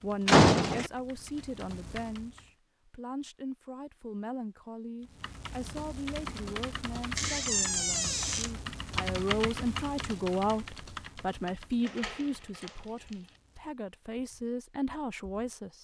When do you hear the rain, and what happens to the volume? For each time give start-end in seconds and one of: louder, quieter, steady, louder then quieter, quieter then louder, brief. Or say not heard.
not heard.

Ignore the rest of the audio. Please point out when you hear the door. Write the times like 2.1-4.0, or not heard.
0.2-0.9, 7.2-8.5, 11.8-13.2.